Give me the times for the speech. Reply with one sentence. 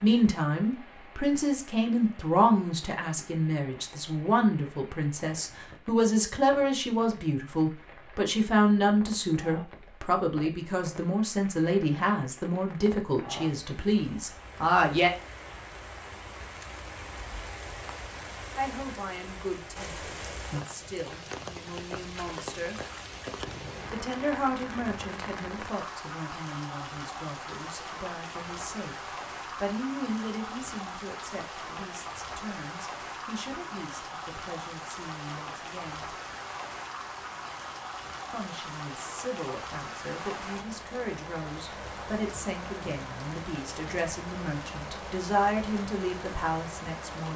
You can hear the speech from 0.0 to 15.1 s, from 18.6 to 22.8 s, from 23.9 to 36.1 s and from 38.3 to 47.3 s.